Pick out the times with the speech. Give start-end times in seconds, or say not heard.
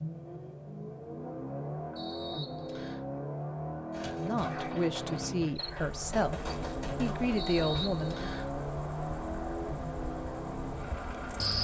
4.2-8.3.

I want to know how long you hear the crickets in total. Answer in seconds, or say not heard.
6 s.